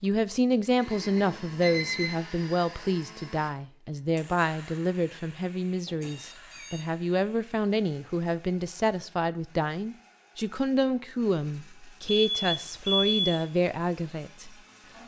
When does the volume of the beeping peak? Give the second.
13 s.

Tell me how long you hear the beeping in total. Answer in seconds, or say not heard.
4 s.